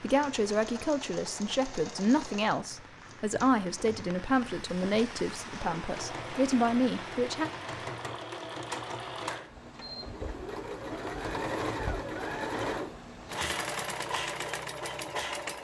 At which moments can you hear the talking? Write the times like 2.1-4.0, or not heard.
0.0-7.5.